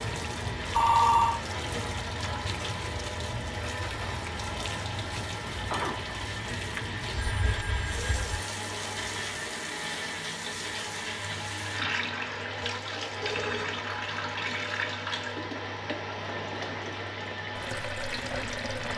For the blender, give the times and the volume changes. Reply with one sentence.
You can hear the blender from 0.0 to 18.9 s, at a steady volume.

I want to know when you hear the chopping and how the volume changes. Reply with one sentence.
You can't hear the chopping here.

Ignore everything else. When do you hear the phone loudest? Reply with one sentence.
The loudest moment of the phone is at 1 second.